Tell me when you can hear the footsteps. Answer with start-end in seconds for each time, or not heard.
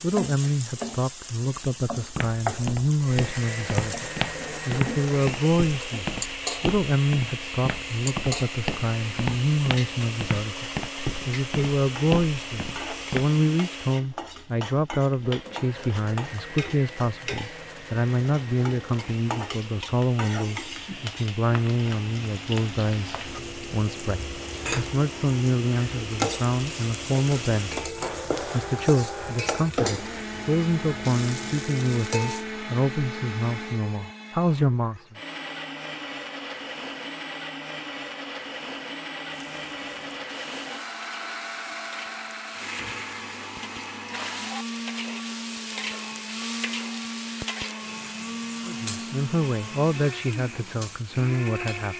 1.9-13.3.